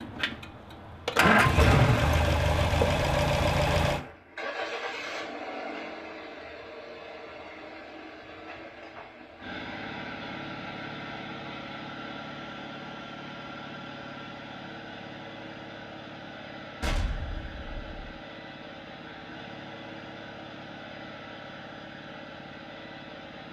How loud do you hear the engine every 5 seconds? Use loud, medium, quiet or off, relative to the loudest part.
loud, quiet, quiet, quiet, quiet.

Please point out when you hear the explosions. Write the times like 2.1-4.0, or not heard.
16.8-18.1.